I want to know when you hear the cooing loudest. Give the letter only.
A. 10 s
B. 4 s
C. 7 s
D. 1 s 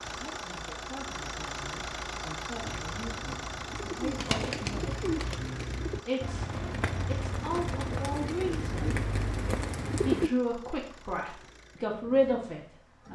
A.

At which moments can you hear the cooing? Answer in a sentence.
You can hear the cooing from 2.6 to 10.3 s.